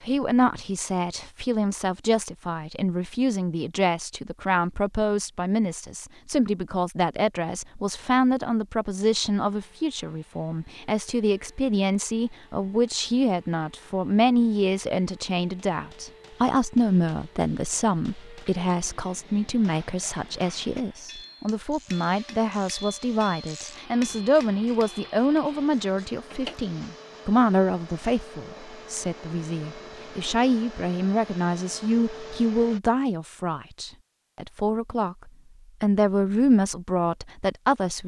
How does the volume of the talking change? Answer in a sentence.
The loudness of the talking stays about the same.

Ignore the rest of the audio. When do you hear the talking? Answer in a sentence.
The talking can be heard from 0.0 to 38.0 s.